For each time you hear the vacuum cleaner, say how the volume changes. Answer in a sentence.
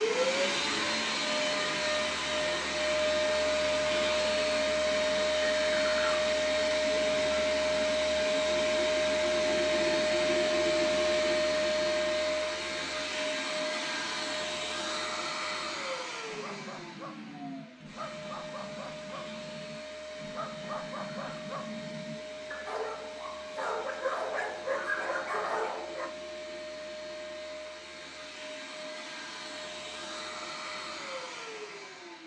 The vacuum cleaner can be heard from 0.0 to 32.2 s, getting quieter.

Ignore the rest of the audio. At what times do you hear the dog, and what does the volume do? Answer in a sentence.
You can hear the dog from 16.2 to 26.1 s, getting louder.